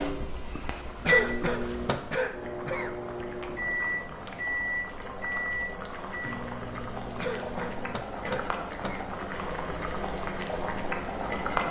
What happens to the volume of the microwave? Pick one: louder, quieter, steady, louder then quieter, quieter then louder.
quieter.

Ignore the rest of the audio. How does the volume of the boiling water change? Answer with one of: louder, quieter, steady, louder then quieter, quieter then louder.
louder.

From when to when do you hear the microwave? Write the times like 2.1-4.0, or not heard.
0.0-11.6.